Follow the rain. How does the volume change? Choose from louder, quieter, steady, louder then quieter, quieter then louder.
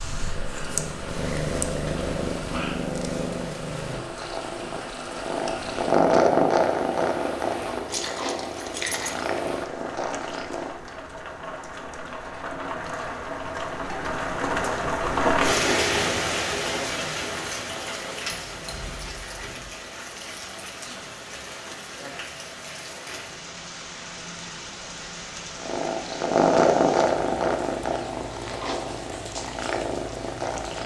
louder then quieter.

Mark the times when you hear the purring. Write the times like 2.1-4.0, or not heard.
0.0-10.8, 25.6-30.8.